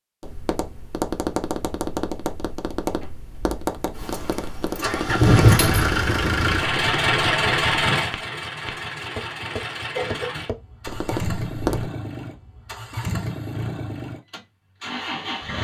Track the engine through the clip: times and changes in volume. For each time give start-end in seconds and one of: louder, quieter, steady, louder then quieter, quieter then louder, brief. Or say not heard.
4.0-15.5 quieter.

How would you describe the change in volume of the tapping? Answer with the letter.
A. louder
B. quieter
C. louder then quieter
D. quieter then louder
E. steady
E.